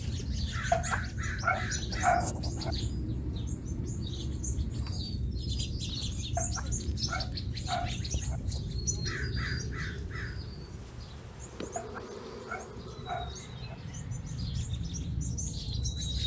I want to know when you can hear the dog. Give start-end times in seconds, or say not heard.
0.7-2.8, 6.3-8.4, 11.8-13.8.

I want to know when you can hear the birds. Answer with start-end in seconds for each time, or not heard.
0.0-16.2.